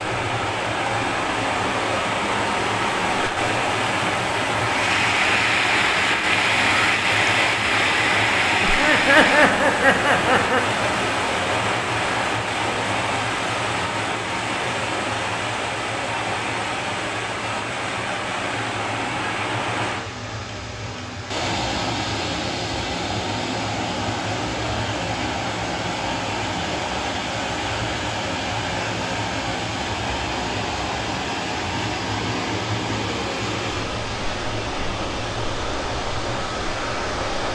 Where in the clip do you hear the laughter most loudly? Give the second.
9 s.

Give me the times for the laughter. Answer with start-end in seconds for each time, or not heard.
8.6-10.6.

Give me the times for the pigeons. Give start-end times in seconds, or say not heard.
not heard.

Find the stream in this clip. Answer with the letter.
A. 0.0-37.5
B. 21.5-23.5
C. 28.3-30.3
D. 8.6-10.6
A.